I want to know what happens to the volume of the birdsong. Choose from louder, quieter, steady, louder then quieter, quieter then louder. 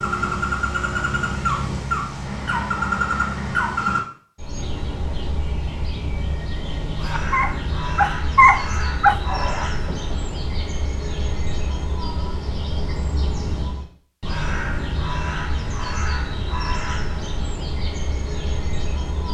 quieter.